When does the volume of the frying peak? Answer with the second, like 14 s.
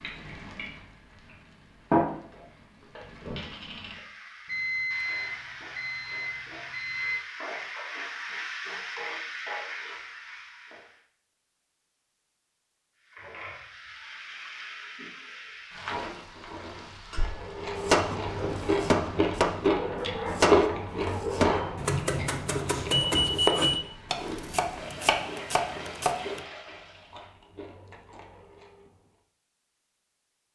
2 s.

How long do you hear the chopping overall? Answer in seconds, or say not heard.
8 s.